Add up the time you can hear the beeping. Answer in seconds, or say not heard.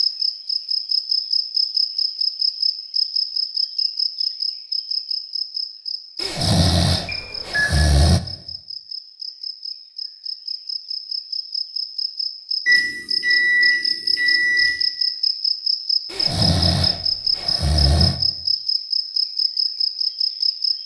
3 s.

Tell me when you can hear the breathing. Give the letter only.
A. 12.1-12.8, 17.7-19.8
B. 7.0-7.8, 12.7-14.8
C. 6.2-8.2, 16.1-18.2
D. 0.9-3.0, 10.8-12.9
C.